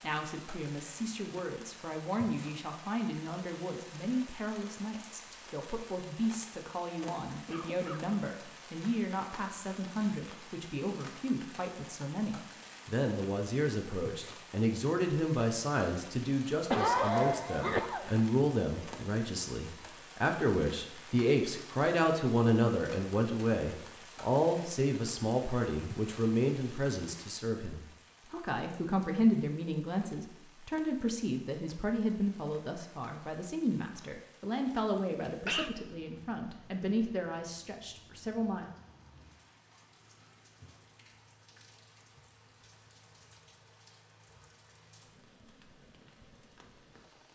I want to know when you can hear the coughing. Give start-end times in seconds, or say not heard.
7.5-8.2, 16.7-18.1, 35.1-35.7.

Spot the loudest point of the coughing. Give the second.
17 s.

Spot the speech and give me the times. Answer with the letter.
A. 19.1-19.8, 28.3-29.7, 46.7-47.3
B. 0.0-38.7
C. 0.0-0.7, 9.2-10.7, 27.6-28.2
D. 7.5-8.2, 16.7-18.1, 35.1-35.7
B.